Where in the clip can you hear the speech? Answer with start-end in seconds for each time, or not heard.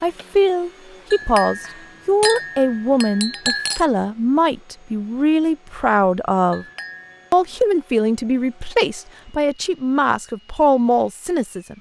0.0-6.7, 7.3-11.7.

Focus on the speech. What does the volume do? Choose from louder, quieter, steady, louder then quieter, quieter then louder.
steady.